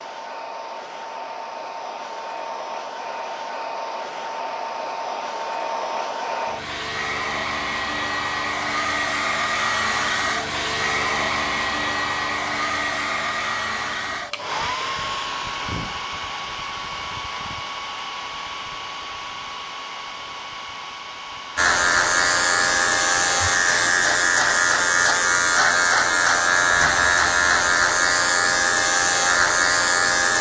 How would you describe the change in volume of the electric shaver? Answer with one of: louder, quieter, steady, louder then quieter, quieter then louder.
steady.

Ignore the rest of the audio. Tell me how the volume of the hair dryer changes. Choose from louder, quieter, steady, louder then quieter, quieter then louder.
louder then quieter.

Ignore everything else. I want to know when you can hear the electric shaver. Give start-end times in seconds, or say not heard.
21.6-30.3.